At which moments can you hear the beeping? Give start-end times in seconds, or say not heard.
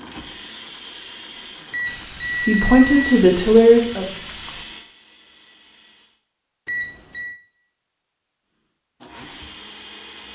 1.7-3.2, 6.7-7.4.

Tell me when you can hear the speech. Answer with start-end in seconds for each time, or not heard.
2.5-4.0.